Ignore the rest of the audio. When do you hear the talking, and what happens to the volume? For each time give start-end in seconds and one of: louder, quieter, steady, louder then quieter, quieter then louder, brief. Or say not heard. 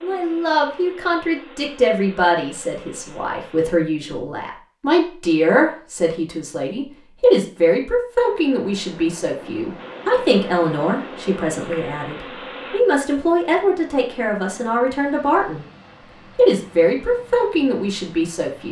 0.0-15.7 steady
16.4-18.6 brief.